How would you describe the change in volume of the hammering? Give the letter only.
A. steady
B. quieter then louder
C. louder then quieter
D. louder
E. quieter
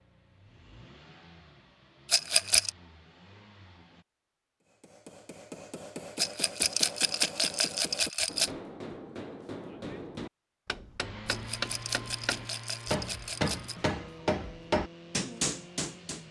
D.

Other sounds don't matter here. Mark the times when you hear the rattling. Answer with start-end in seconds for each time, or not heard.
2.0-2.7, 6.2-8.5, 11.2-13.8.